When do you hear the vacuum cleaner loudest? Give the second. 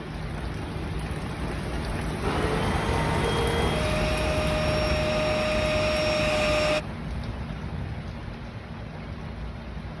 6 s.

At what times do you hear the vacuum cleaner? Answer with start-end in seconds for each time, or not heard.
2.2-6.8.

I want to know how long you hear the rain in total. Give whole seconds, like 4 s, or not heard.
10 s.